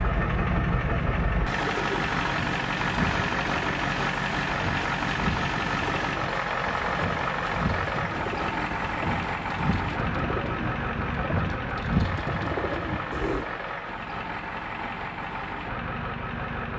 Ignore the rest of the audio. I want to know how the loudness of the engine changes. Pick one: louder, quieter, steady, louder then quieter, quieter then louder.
quieter.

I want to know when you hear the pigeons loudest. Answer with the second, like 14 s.
12 s.